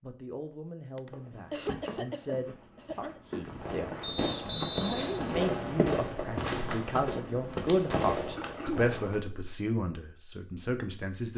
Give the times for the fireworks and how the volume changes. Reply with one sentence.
The fireworks can be heard from 3.5 to 9.2 s, getting quieter then louder.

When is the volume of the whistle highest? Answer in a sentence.
The loudest moment of the whistle is at 5 seconds.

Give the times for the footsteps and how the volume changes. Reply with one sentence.
You can hear the footsteps from 1.1 to 7.9 s, getting louder.